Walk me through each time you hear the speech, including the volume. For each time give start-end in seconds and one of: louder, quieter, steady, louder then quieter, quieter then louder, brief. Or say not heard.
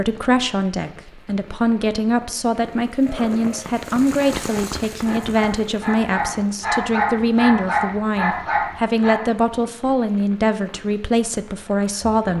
0.0-12.3 steady.